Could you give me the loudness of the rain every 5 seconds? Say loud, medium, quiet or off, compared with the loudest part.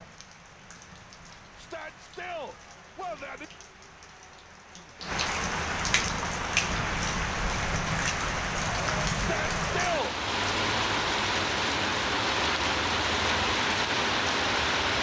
quiet, loud, loud.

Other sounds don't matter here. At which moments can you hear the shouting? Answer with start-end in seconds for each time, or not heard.
1.6-3.5, 9.2-10.2.